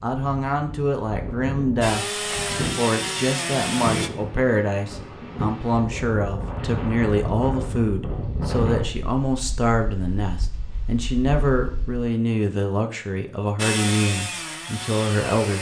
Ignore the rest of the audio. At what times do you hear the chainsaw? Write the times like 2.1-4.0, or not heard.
1.8-4.1, 13.6-15.5.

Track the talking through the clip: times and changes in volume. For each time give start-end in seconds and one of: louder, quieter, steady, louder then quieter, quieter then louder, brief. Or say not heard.
0.0-15.5 steady.